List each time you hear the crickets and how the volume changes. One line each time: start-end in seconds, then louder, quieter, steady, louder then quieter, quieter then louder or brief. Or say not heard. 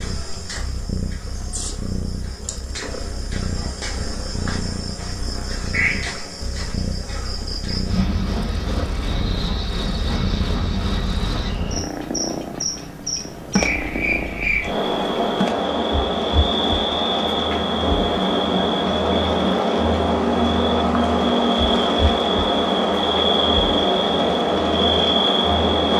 0.0-25.9 louder.